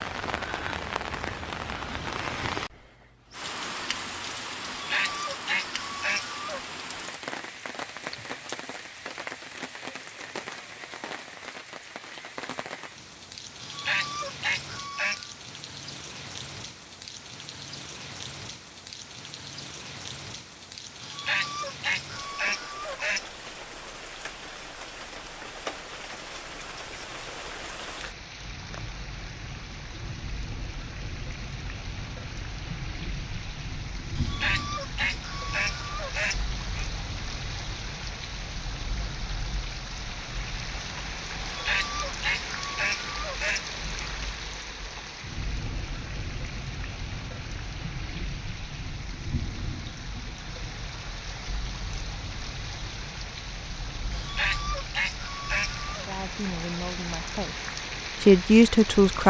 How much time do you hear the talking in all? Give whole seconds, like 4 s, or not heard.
3 s.